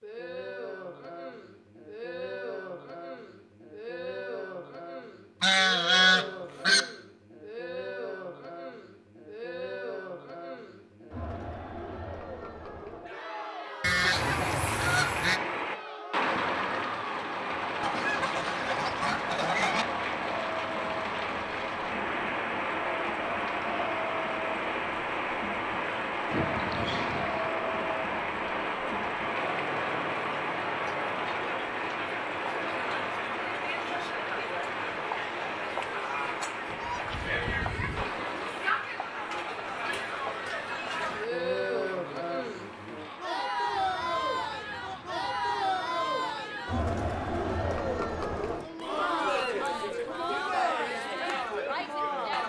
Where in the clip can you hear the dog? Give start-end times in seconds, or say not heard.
not heard.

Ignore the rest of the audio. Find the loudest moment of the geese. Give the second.
6 s.